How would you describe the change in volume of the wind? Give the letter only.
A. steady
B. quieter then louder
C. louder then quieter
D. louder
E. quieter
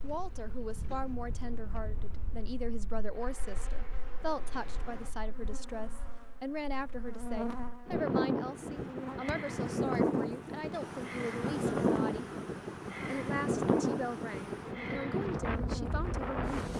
B.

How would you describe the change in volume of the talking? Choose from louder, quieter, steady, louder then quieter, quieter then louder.
steady.